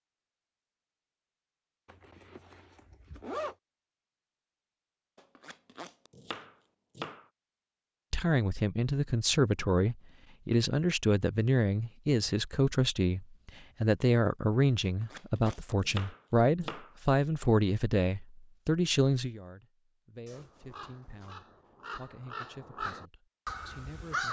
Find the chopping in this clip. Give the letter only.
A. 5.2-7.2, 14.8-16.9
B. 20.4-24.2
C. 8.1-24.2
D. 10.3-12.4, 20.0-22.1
A.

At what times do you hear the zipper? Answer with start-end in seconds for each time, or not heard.
1.9-3.5, 20.2-21.4.